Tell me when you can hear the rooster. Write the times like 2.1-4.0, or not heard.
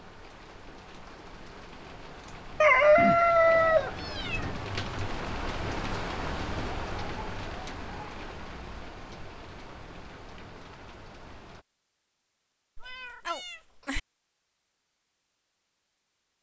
2.6-4.6.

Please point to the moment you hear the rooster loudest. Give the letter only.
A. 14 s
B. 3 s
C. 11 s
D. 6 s
B.